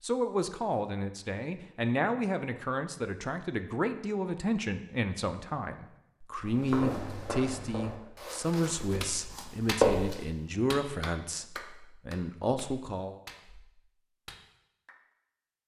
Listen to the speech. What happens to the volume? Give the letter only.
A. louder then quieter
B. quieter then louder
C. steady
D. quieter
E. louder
C.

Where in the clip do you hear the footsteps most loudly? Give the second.
10 s.